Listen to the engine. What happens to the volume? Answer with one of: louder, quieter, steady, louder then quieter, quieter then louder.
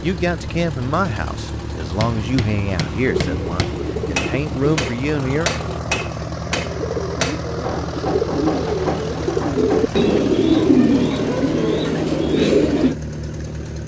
steady.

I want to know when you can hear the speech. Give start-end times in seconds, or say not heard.
0.0-5.5.